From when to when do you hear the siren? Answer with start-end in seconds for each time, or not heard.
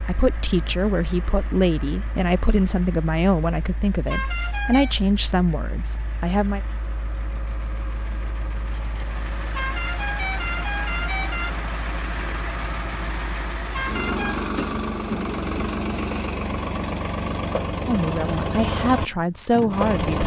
not heard.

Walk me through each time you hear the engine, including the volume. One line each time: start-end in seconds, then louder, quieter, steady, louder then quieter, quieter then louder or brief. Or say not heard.
0.0-20.2 louder.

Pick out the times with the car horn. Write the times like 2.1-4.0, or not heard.
4.0-5.0, 9.5-11.5, 13.7-14.4.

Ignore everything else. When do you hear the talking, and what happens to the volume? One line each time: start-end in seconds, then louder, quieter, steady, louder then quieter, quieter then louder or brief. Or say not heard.
0.0-6.6 steady
17.9-20.2 brief.